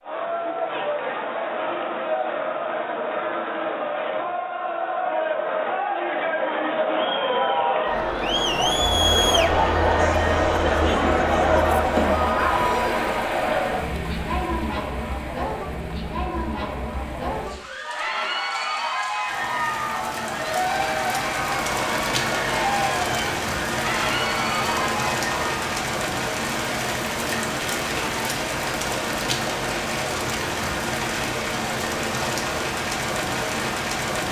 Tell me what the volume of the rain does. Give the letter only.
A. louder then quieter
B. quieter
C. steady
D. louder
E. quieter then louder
D.